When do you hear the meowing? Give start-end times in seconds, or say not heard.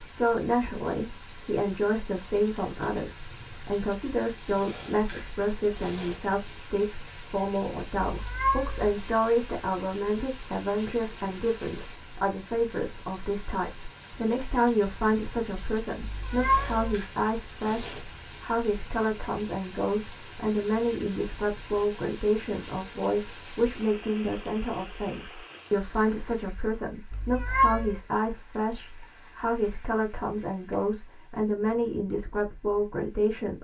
8.1-8.9, 16.0-17.0, 27.1-28.0.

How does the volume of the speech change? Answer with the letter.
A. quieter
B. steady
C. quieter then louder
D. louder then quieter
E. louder
B.